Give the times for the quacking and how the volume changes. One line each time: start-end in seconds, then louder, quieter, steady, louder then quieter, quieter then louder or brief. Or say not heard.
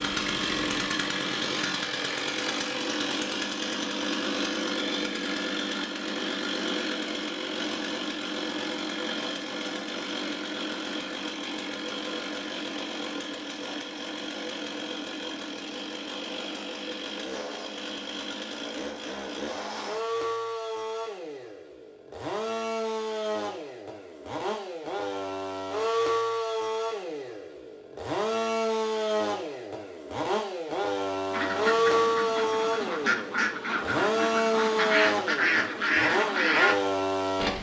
31.3-36.8 louder.